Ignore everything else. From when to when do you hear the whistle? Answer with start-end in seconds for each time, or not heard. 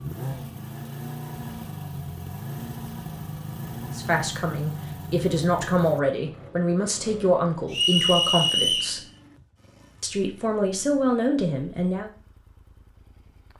7.7-8.9.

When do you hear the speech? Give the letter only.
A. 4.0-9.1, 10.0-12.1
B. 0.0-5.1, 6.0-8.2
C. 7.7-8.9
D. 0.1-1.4
A.